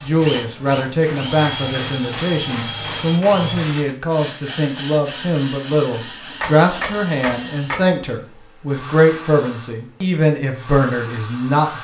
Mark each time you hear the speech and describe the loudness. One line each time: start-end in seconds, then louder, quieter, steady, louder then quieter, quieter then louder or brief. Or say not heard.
0.0-11.7 steady.